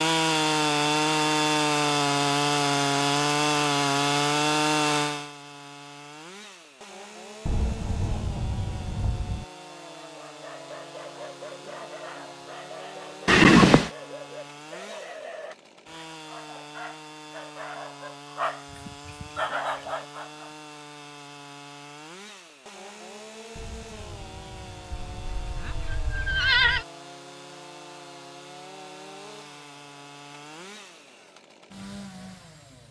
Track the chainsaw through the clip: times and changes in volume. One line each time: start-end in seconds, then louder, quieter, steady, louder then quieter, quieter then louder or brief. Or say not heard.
0.0-32.8 quieter.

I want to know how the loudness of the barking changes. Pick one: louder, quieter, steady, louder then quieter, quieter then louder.
louder.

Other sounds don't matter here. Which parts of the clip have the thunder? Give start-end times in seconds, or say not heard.
7.5-9.4, 23.6-25.6.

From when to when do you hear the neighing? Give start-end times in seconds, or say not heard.
13.2-13.9, 24.9-26.9.